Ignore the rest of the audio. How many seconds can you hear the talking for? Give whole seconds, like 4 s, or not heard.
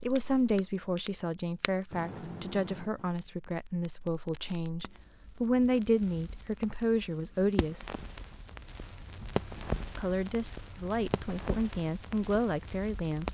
11 s.